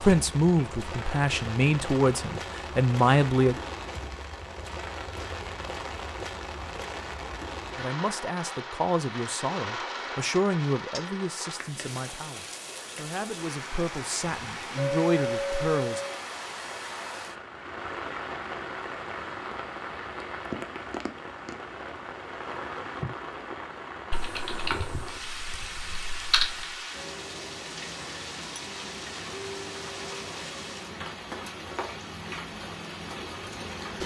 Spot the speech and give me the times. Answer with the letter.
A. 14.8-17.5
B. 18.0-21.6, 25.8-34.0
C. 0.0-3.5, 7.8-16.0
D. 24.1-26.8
C.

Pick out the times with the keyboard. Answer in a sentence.
The keyboard can be heard from 24.1 to 26.8 s.